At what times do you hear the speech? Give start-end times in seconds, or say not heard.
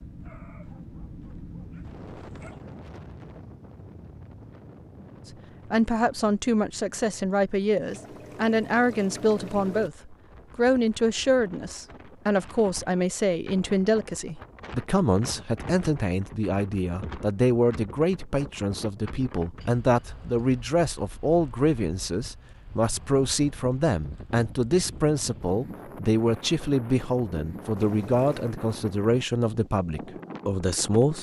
5.7-31.1.